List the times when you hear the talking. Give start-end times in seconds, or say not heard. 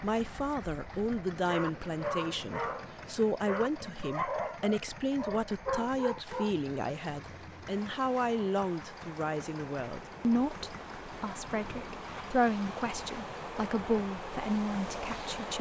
0.0-15.5.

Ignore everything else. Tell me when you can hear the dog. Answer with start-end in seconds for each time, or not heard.
0.9-6.5.